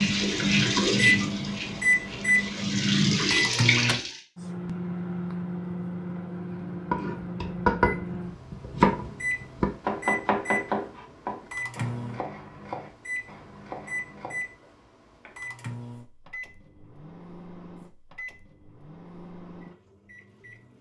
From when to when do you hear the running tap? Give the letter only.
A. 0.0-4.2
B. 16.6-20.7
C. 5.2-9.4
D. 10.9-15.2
A.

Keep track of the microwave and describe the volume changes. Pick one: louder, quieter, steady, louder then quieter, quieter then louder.
quieter.